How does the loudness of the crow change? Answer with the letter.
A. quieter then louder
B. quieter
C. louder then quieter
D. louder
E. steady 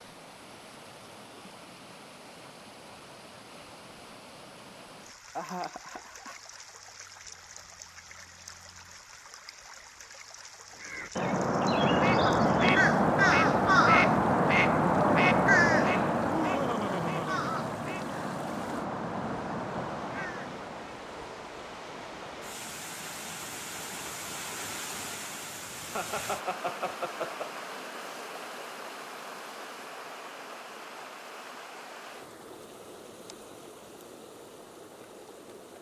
B.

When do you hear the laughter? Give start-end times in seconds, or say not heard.
5.3-6.4, 16.3-17.7, 25.9-27.5.